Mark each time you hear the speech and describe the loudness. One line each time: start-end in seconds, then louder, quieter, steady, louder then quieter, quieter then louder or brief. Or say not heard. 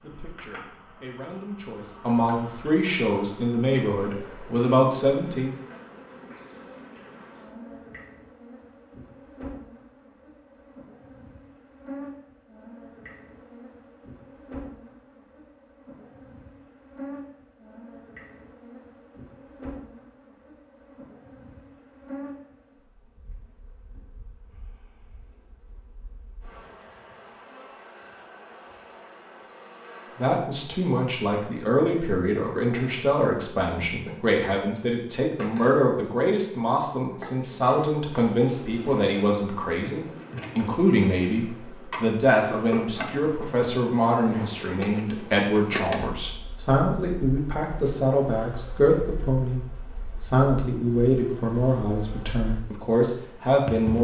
0.0-5.5 louder
30.1-53.9 steady.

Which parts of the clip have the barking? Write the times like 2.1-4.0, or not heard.
not heard.